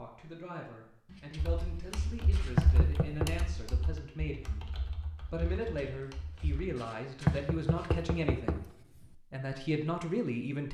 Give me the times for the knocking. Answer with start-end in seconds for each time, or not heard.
2.5-3.5, 7.2-8.7.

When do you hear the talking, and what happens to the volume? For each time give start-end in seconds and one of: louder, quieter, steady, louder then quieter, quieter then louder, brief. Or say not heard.
0.0-10.6 louder.